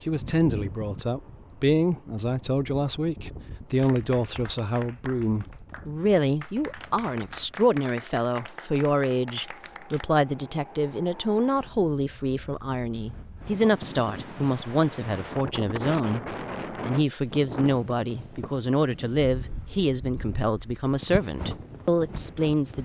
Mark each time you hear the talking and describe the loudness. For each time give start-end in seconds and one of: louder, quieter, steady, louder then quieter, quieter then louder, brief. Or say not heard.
0.1-22.8 steady.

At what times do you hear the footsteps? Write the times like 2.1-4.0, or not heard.
not heard.